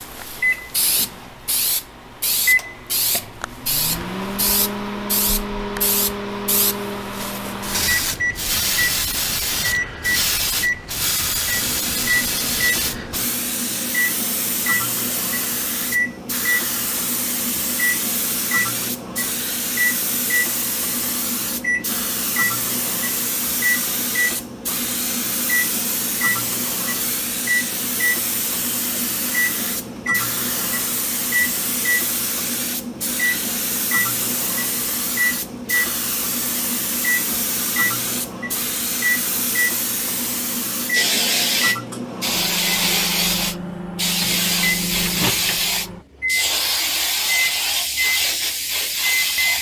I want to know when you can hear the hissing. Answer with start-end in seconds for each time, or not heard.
0.0-49.5.